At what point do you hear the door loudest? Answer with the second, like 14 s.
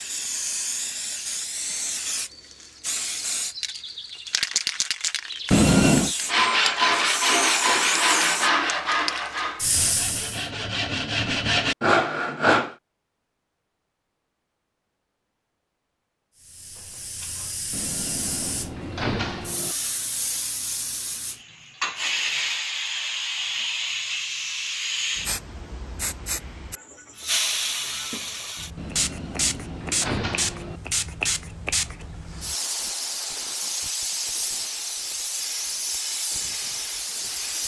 6 s.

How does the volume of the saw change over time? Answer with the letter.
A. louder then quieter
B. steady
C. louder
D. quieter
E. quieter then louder
E.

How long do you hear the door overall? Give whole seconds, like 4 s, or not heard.
5 s.